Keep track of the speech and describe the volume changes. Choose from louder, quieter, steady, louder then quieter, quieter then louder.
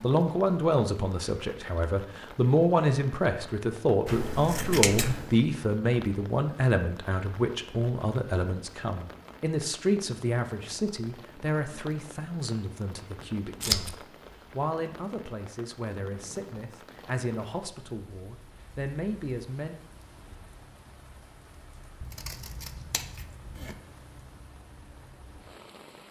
quieter.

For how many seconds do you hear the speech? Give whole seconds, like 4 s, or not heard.
20 s.